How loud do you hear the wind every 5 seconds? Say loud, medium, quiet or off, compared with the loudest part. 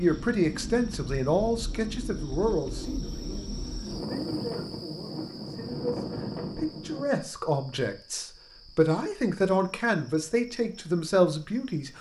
loud, loud, off.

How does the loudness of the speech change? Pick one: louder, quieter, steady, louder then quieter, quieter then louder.
quieter then louder.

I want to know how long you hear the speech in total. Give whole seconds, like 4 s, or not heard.
12 s.